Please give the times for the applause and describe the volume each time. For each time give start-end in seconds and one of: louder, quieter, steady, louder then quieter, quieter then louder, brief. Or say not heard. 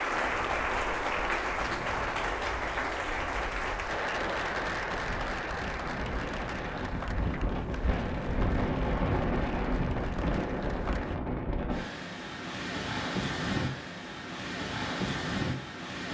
0.0-11.2 quieter.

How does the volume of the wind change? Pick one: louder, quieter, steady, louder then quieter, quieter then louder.
louder.